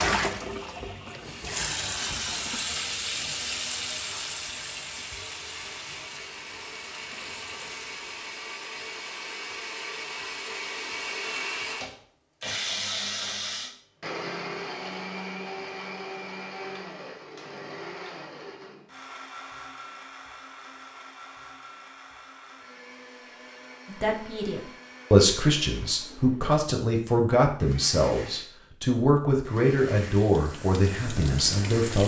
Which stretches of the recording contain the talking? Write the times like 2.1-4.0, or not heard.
23.9-32.0.